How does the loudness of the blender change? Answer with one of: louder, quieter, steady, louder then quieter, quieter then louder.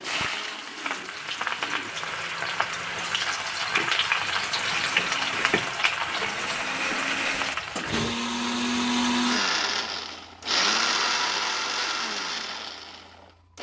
louder.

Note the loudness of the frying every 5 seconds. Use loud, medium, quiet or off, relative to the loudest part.
loud, loud, off.